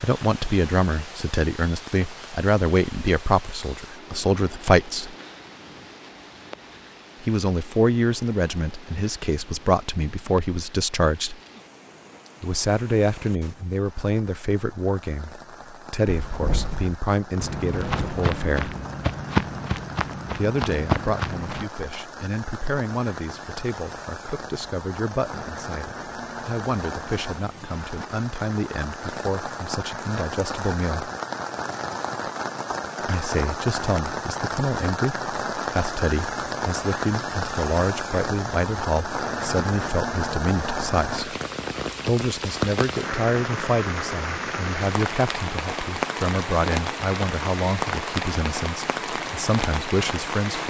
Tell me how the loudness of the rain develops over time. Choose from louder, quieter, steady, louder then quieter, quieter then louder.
louder.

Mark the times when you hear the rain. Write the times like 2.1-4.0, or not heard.
0.0-50.6.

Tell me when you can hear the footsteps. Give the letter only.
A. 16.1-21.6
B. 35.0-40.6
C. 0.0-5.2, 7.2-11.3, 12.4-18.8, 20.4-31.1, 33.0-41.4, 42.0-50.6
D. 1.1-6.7
A.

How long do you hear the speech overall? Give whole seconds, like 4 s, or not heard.
43 s.